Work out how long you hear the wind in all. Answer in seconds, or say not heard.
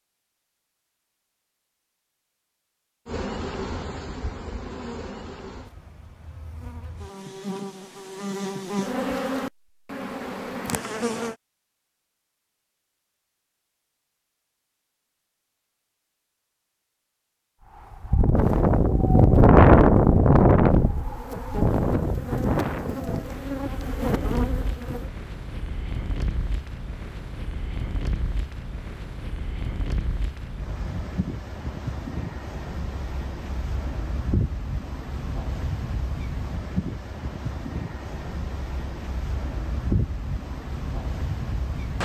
24 s.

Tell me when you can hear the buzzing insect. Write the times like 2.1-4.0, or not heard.
3.0-11.3, 18.3-25.1.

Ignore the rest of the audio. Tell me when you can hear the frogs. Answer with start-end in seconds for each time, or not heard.
not heard.